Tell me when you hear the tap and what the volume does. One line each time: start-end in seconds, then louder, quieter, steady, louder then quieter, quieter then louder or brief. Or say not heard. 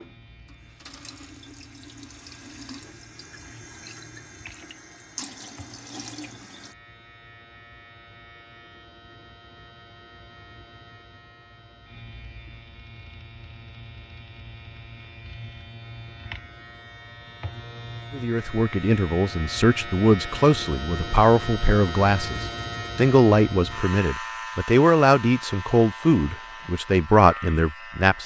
0.0-6.8 louder.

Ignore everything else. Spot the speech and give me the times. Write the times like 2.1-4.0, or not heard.
18.1-28.2.